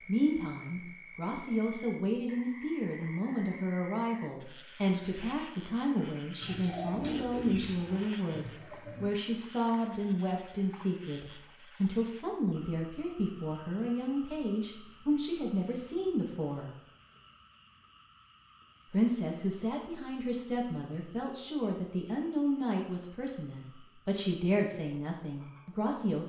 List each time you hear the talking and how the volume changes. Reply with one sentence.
You can hear the talking from 0.1 to 16.7 s, at a steady volume; and from 18.9 to 26.2 s, at a steady volume.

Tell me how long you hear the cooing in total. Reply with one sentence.
The cooing can be heard for 3 seconds in total.